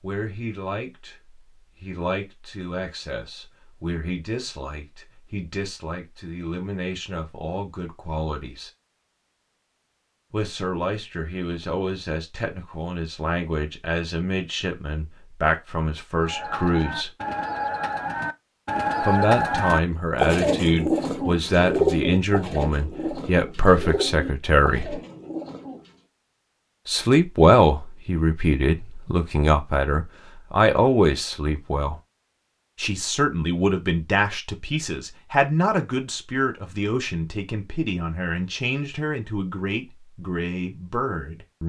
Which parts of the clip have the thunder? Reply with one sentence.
The thunder can't be heard in this clip.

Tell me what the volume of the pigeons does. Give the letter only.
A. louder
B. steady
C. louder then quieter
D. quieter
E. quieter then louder
C.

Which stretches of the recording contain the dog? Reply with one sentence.
The dog can't be heard in this clip.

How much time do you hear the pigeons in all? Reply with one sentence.
You can hear the pigeons for 10 seconds altogether.